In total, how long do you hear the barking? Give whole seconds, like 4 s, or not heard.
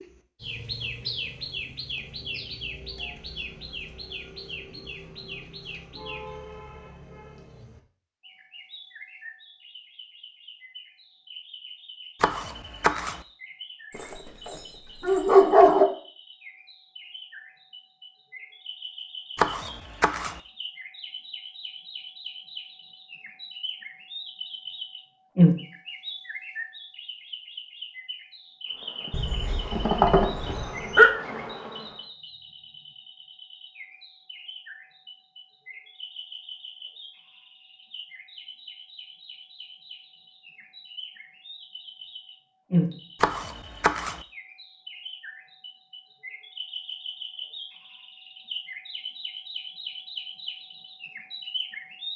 4 s.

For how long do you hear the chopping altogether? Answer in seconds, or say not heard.
3 s.